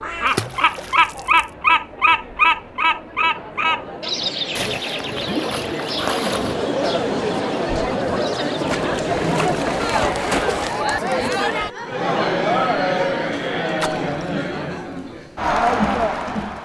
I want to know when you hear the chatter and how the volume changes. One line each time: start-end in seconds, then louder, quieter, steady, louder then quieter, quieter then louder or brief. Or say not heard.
0.0-16.6 louder.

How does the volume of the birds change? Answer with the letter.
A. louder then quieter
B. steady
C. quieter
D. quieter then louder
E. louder
C.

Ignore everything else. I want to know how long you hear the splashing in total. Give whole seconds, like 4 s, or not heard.
6 s.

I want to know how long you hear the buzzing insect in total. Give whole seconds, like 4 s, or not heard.
not heard.